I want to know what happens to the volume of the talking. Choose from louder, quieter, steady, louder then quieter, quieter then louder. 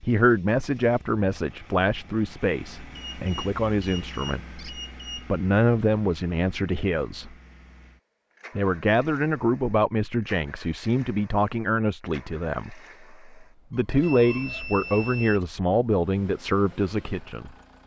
steady.